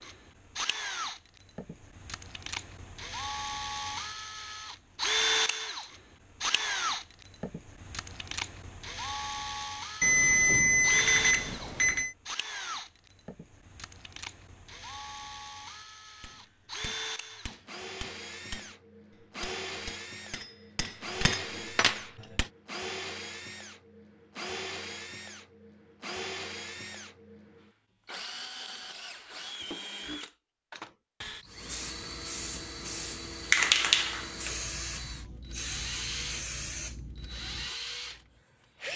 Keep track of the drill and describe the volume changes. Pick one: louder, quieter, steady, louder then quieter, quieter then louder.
quieter.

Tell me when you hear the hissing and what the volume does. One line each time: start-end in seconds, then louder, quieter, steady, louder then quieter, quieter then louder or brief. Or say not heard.
31.6-38.9 louder then quieter.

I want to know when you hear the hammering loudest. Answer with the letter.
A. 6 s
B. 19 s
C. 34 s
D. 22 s
D.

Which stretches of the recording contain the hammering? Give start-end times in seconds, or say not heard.
16.2-22.4.